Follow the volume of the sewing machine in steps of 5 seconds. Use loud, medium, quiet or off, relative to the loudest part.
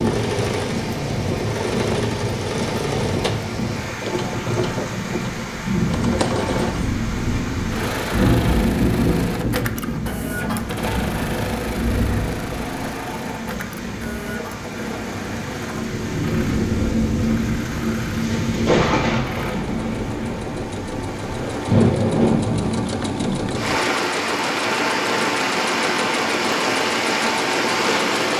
loud, loud, loud, medium, loud, loud.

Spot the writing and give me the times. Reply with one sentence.
You can't hear the writing here.